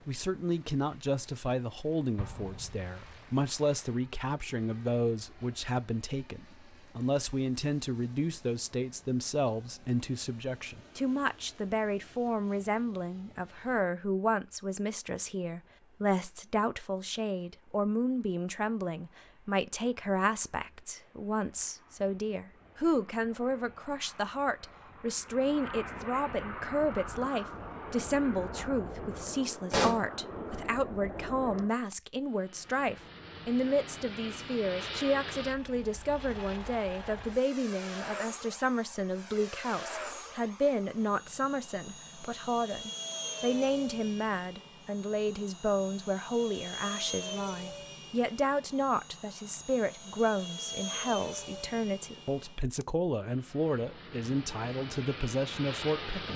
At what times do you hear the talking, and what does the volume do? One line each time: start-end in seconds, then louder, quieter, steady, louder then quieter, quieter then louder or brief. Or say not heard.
0.1-56.3 steady.